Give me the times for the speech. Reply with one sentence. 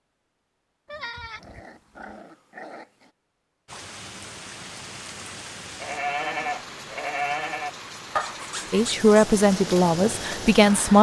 The speech can be heard from 8.7 to 10.9 s.